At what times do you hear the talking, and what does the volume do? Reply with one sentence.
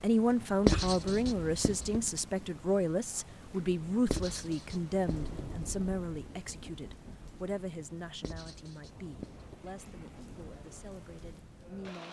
You can hear the talking from 0.0 to 12.0 s, getting quieter.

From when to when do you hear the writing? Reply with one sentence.
You can hear the writing from 0.7 to 2.0 s, from 4.0 to 5.3 s and from 8.2 to 9.6 s.